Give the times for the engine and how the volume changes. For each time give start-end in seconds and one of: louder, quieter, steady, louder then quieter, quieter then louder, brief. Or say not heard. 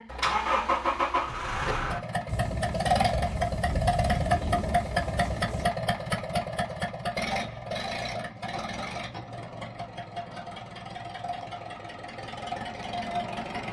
0.0-13.6 quieter.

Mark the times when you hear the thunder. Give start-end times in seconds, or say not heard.
2.2-5.7.